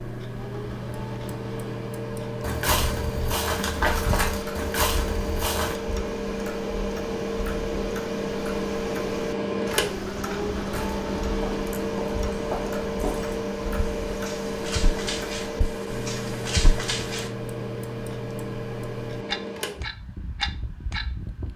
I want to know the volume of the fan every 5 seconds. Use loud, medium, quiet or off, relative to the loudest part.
medium, loud, loud, medium, quiet.